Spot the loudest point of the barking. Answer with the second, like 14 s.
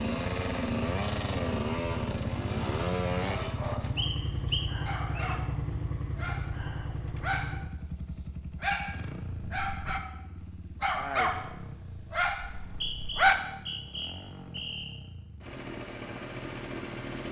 13 s.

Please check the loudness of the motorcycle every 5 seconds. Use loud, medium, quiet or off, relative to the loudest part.
loud, medium, quiet, medium.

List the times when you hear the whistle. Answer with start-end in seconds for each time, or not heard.
4.0-5.3, 12.4-15.0.